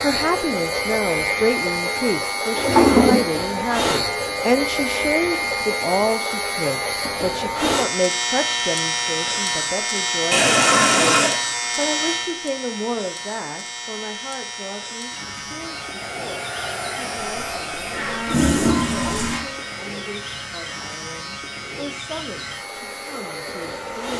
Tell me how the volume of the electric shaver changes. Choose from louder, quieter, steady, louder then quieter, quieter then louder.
quieter.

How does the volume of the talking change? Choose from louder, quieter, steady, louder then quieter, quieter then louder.
quieter.